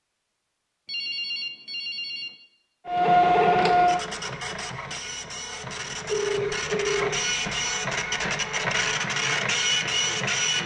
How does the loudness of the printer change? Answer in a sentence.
The volume of the printer goes down, then up.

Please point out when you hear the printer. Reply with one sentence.
You can hear the printer from 2.9 to 10.6 s.